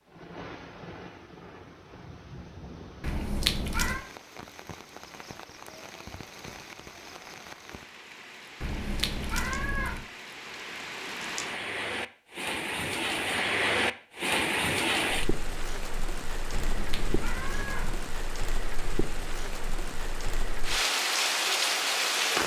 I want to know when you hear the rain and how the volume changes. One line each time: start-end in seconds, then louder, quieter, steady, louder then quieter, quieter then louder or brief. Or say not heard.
0.0-22.4 louder.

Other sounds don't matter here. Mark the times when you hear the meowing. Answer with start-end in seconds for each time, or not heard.
3.0-4.0, 8.6-10.1, 16.5-18.1.